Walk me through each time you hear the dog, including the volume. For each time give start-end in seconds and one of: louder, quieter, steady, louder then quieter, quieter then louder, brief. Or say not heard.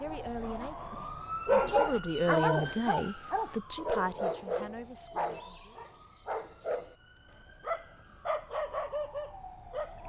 0.0-7.0 quieter
7.6-10.0 brief.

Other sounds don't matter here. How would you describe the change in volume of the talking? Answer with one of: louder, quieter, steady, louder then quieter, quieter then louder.
louder then quieter.